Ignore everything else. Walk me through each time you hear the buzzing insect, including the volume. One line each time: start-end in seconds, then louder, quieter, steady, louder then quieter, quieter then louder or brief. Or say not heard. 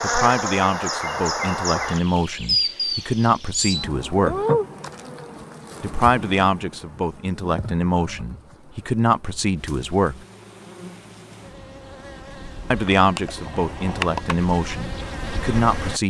0.0-16.0 quieter then louder.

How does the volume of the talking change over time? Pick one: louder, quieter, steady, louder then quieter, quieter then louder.
steady.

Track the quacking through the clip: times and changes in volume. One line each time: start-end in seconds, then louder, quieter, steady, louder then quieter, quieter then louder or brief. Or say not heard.
not heard.